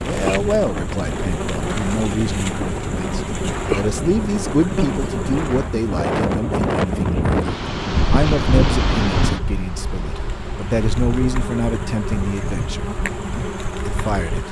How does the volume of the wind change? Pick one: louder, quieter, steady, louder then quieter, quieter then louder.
louder then quieter.